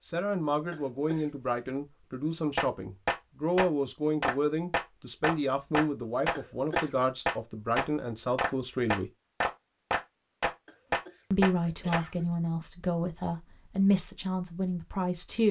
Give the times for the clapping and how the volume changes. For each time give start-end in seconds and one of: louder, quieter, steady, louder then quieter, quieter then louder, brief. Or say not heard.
2.5-12.0 steady.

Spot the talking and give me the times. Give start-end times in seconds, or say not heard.
0.0-9.1, 11.3-15.4.